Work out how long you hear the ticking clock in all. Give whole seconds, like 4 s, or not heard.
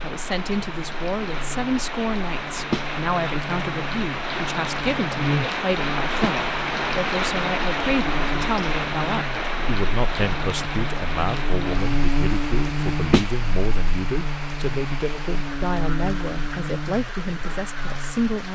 not heard.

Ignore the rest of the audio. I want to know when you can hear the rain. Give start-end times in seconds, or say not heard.
0.0-18.4.